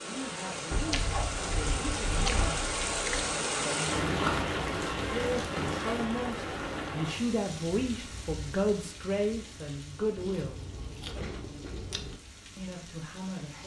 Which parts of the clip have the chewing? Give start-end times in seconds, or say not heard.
0.7-3.2, 10.2-12.2.